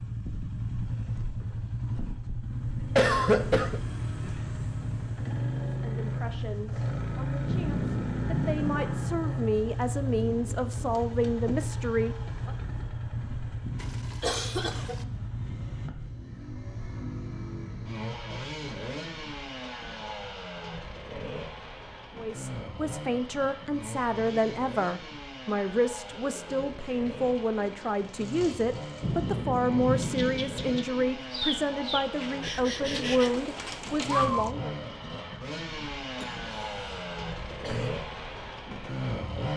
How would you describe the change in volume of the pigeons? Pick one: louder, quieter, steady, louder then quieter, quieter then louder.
louder.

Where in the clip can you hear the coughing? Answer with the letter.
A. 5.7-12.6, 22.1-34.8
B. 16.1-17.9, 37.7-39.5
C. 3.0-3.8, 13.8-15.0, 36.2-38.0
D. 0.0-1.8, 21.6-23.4
C.